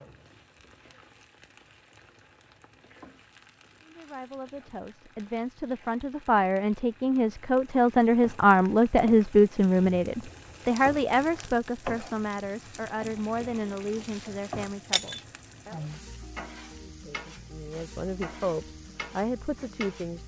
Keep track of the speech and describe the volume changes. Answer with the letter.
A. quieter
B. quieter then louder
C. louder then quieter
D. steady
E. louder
C.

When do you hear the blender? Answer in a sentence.
The blender can't be heard in this clip.